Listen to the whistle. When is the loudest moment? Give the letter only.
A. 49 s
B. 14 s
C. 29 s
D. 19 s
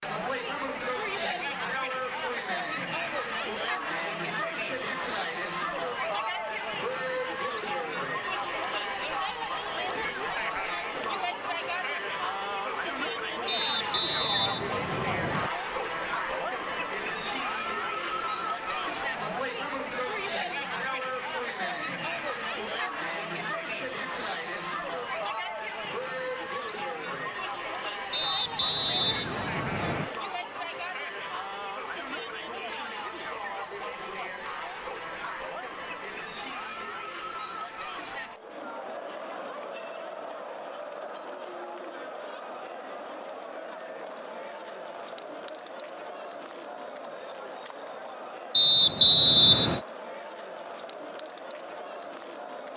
A.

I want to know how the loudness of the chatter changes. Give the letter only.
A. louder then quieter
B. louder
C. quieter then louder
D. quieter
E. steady
D.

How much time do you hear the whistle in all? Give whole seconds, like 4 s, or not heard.
5 s.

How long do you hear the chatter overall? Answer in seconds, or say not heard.
53 s.